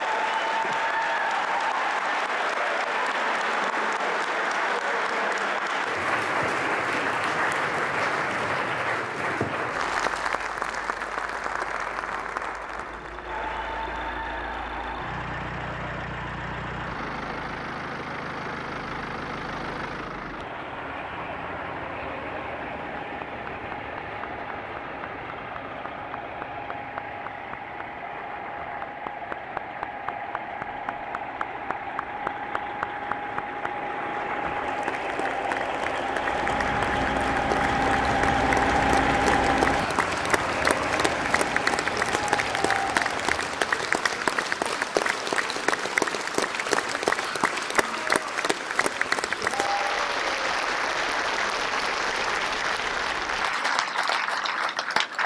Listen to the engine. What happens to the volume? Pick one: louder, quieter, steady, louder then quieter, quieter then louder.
louder.